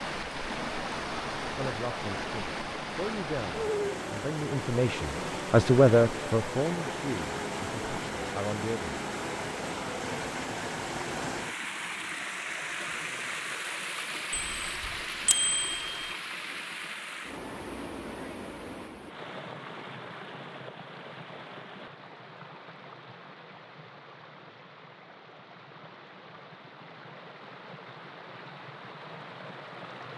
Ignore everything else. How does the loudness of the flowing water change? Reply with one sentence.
The loudness of the flowing water goes down.